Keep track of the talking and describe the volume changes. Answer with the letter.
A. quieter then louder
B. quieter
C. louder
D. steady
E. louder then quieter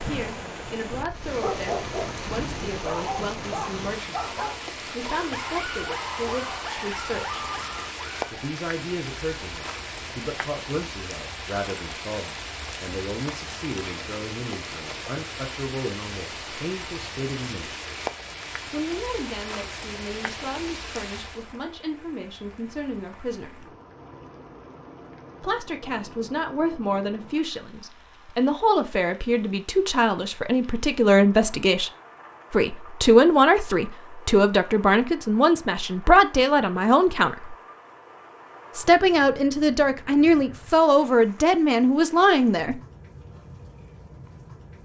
C.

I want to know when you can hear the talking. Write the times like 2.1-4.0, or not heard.
0.0-7.5, 8.3-17.8, 18.7-23.8, 25.4-31.9, 32.5-37.5, 38.8-42.8.